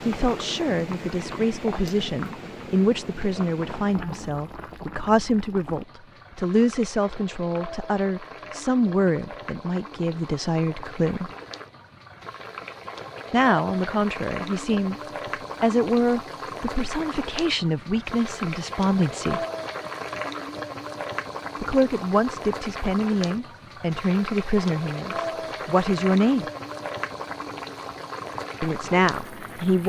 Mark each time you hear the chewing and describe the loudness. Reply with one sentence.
The chewing can't be heard in this clip.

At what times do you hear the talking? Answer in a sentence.
You can hear the talking from 0.1 to 11.3 s, from 13.3 to 14.9 s, from 15.6 to 19.4 s, from 21.6 to 26.4 s and from 28.6 to 29.8 s.